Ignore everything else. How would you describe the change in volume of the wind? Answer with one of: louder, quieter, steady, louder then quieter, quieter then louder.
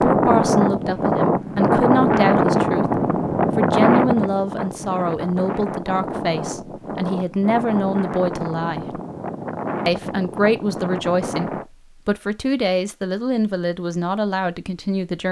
quieter.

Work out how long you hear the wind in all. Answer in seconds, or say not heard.
12 s.